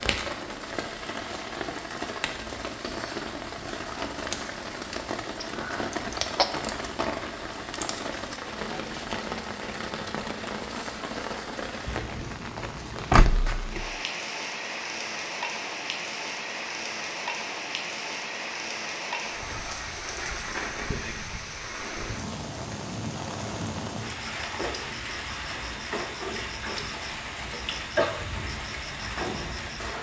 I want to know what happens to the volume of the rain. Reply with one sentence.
The volume of the rain stays about the same.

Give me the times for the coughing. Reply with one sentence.
The coughing can be heard from 5.4 to 6.5 s and from 27.5 to 28.2 s.